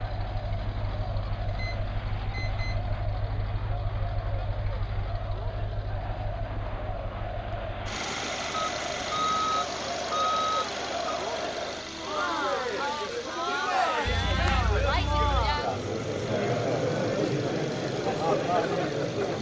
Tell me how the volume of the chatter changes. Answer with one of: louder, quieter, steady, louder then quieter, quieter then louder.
louder.